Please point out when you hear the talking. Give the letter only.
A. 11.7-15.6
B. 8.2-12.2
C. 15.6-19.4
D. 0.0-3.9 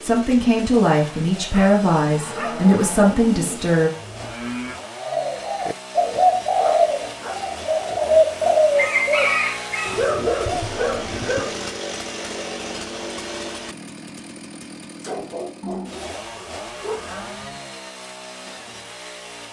D.